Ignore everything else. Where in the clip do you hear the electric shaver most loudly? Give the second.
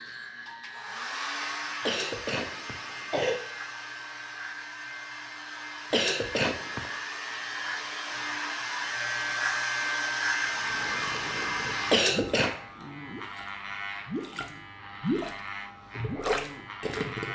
10 s.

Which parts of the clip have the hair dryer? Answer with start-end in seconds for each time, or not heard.
0.0-12.0.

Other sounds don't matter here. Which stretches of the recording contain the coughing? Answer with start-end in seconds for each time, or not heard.
1.9-3.4, 5.9-6.8, 11.9-12.5.